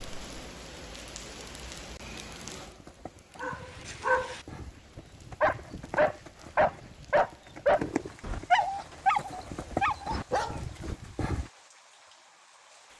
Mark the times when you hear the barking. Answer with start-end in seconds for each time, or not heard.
3.4-10.6.